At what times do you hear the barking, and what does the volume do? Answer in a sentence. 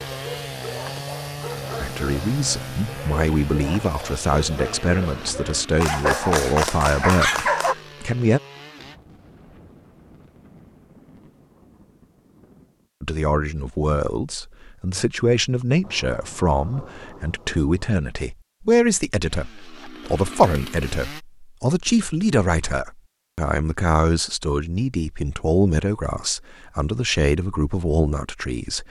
You can hear the barking from 0.0 to 7.8 s, getting louder.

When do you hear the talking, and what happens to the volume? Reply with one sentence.
You can hear the talking from 1.8 to 8.4 s, at a steady volume; and from 13.0 to 28.8 s, at a steady volume.